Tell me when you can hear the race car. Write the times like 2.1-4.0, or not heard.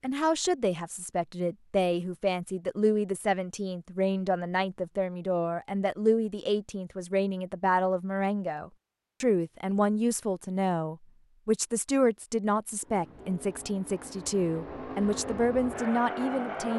12.8-16.7.